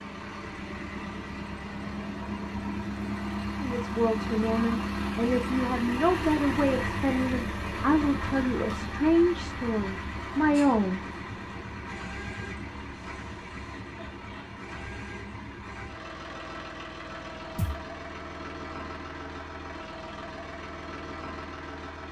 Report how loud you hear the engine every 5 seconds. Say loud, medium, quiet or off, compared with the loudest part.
loud, loud, medium, medium, medium.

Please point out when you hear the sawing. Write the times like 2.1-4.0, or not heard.
not heard.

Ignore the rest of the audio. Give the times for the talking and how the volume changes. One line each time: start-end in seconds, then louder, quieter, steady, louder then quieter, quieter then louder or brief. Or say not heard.
3.6-11.0 steady.